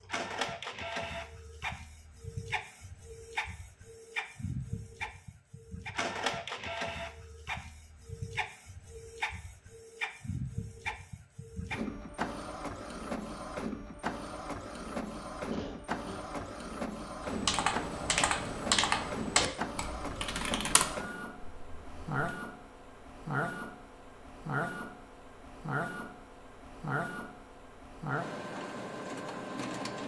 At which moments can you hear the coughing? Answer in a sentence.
The coughing can be heard from 15.5 to 16.4 s.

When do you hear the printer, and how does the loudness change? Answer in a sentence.
You can hear the printer from 0.0 to 30.0 s, at a steady volume.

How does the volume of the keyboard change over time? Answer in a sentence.
The loudness of the keyboard goes down.